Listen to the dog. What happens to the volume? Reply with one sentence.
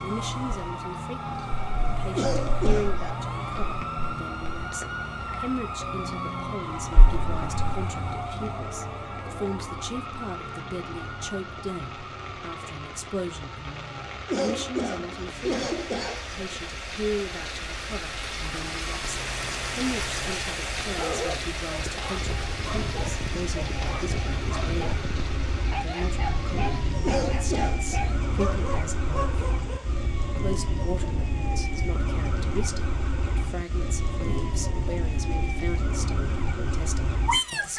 The loudness of the dog stays about the same.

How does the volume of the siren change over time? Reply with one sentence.
The loudness of the siren goes down, then up.